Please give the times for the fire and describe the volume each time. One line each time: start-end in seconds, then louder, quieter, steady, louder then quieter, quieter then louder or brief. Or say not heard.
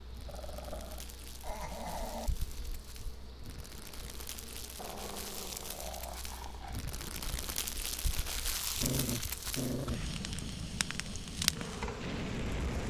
0.0-12.8 louder.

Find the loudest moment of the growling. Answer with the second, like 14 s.
9 s.